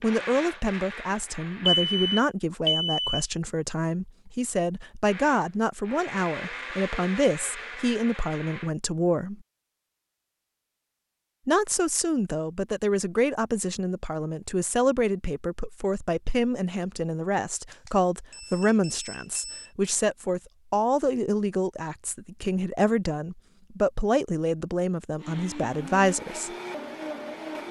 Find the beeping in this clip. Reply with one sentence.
You can hear the beeping from 1.6 to 3.2 s and from 17.7 to 19.7 s.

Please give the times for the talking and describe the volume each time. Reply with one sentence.
The talking can be heard from 0.0 to 9.3 s, at a steady volume; and from 11.4 to 26.5 s, at a steady volume.